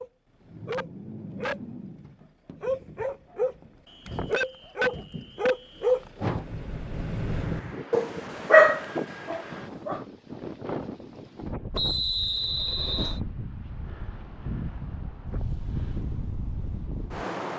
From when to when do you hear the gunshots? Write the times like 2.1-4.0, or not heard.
not heard.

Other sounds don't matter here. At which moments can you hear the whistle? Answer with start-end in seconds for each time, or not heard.
3.9-5.8, 11.8-13.2.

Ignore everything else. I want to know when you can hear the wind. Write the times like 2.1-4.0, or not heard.
7.2-17.5.